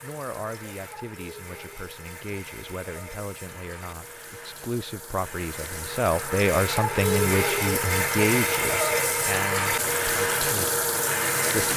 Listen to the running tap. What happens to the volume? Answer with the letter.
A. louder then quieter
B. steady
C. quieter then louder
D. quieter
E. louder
E.